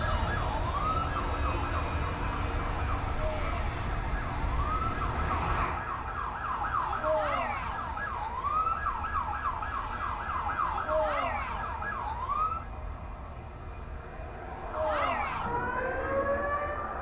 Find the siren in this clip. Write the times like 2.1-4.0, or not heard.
0.0-12.7, 14.7-16.9.